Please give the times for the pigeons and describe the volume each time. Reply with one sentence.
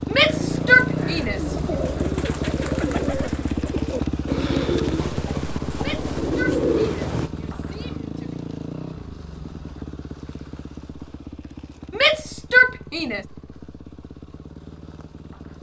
The pigeons can be heard from 0.2 to 7.3 s, getting louder.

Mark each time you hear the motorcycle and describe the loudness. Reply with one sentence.
You can hear the motorcycle from 0.0 to 15.5 s, getting quieter.